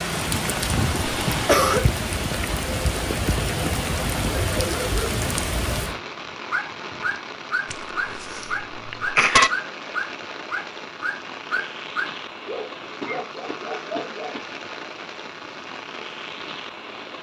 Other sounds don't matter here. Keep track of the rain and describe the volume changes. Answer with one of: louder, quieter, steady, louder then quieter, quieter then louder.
quieter.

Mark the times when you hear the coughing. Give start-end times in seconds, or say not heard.
1.3-1.9, 7.7-9.5, 13.0-14.4.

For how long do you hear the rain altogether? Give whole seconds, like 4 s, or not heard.
17 s.